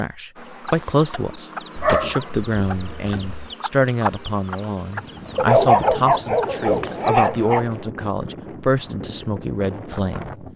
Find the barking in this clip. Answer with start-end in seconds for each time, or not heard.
1.8-3.5, 5.3-7.7.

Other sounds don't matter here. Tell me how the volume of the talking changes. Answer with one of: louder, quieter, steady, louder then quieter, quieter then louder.
steady.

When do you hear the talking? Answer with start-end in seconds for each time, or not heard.
0.0-10.4.